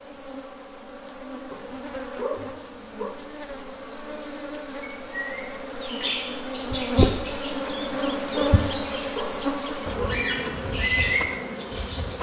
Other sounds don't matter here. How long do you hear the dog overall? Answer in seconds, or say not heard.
4 s.